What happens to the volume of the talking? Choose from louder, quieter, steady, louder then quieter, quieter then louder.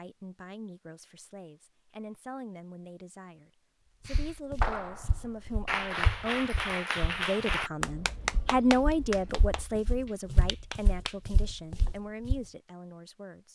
louder then quieter.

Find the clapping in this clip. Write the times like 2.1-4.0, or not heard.
4.0-11.2.